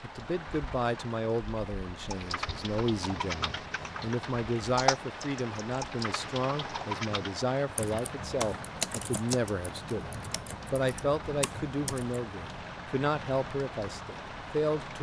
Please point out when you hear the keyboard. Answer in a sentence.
You can hear the keyboard from 2.1 to 12.2 s.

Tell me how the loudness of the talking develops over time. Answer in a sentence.
The volume of the talking stays about the same.